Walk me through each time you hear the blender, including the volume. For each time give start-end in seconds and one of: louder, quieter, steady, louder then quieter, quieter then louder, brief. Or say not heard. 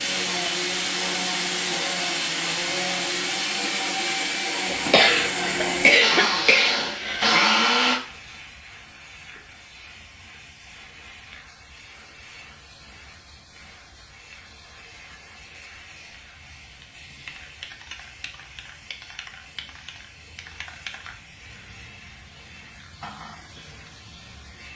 0.0-8.0 louder.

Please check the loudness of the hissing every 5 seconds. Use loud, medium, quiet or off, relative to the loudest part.
loud, medium, quiet, quiet, quiet.